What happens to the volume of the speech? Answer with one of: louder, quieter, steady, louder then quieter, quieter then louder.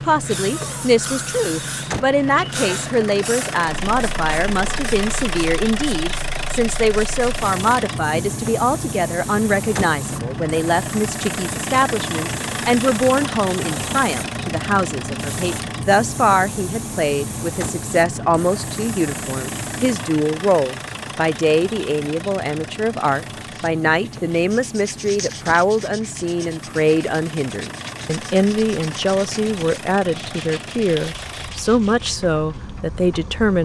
steady.